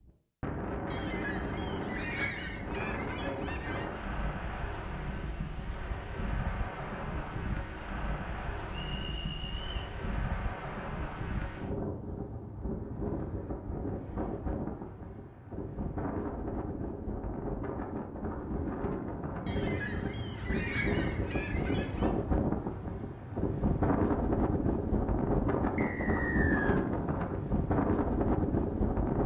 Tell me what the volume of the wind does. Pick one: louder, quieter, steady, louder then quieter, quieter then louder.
louder.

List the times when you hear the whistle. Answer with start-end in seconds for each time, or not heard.
8.7-9.9, 25.8-26.8.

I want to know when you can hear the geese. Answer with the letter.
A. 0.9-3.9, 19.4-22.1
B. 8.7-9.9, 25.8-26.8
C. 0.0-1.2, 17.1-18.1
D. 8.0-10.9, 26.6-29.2
A.